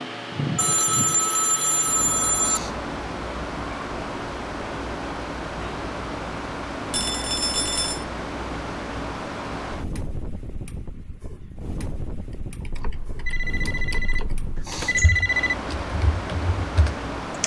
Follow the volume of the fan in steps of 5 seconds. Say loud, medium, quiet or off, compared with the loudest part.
loud, loud, medium, loud.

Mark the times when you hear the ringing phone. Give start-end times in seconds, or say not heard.
0.6-2.6, 6.9-8.1, 12.8-15.6.